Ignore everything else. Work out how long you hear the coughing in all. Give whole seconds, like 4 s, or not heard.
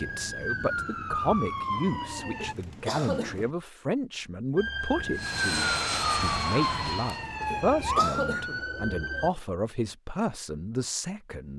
2 s.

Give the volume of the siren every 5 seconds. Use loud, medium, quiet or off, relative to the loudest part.
loud, loud, off.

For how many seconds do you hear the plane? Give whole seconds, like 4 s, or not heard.
2 s.